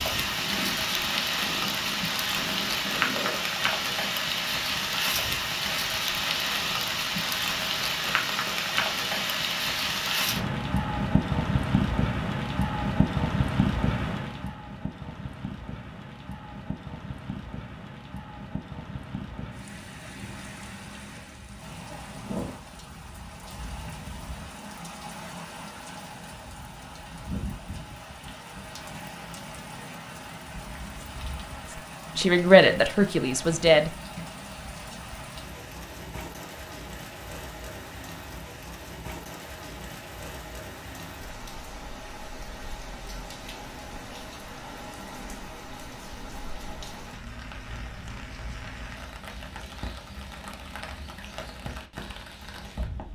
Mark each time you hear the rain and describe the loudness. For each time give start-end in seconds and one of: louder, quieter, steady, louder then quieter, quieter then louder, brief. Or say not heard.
0.0-53.0 quieter.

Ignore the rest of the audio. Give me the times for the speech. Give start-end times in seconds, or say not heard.
32.1-33.9.